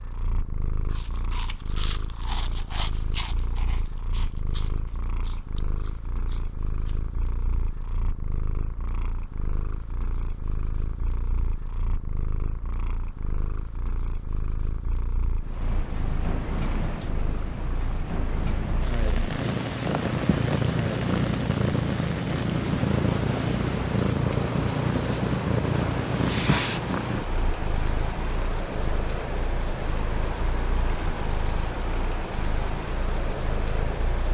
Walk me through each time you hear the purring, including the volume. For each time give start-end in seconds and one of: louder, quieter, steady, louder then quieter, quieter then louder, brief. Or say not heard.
0.0-34.3 louder then quieter.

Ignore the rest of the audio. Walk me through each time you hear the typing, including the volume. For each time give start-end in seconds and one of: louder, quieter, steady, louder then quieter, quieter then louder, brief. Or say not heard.
not heard.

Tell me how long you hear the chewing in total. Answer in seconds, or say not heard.
6 s.